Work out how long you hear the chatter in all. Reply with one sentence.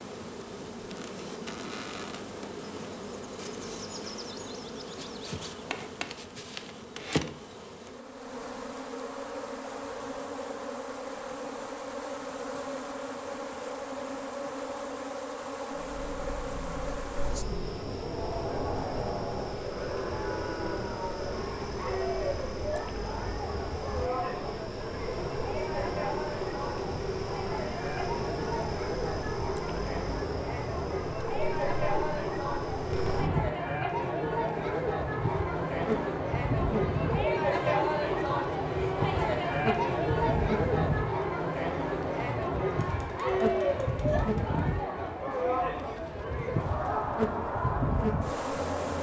You can hear the chatter for 33 seconds altogether.